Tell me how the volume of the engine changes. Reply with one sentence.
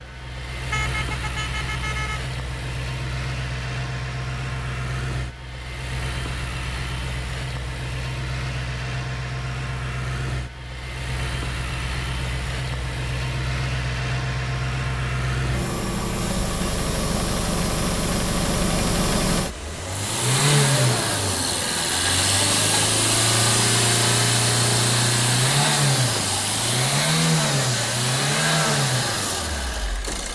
The loudness of the engine goes up.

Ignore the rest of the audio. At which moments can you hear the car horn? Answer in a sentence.
The car horn can be heard from 0.7 to 2.2 s.